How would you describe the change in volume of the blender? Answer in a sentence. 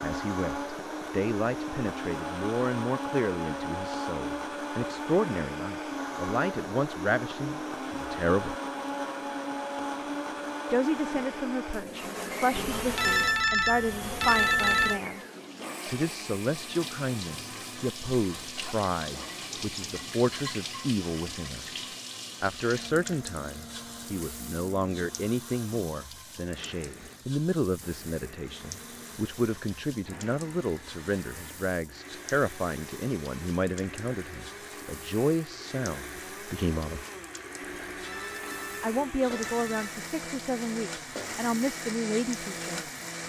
The volume of the blender goes down, then up.